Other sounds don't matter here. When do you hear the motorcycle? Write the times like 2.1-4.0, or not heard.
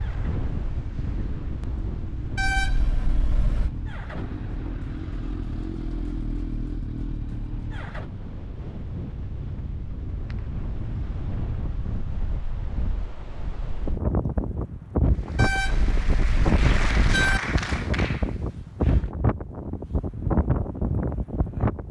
0.0-8.1.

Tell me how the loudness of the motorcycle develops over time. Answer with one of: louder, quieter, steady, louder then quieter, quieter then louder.
louder.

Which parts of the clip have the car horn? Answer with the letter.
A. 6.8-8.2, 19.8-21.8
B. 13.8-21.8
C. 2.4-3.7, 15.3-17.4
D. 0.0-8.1
C.